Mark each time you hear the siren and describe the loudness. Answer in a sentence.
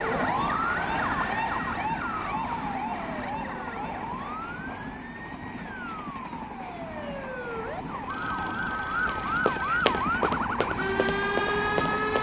You can hear the siren from 0.0 to 12.1 s, getting quieter then louder.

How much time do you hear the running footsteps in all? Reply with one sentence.
The running footsteps can be heard for 3 seconds in total.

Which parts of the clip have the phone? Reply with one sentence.
The phone can be heard from 8.1 to 10.1 s.